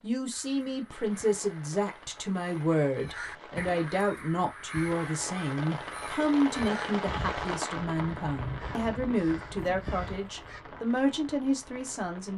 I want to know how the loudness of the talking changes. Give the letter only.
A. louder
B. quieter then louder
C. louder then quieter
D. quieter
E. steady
E.